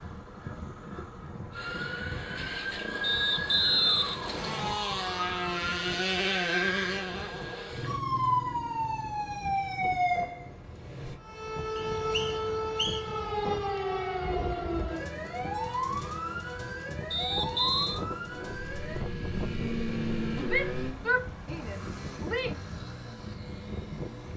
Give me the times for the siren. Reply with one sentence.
You can hear the siren from 1.5 to 19.1 s.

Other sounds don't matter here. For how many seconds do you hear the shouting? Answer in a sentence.
You can hear the shouting for 2 seconds altogether.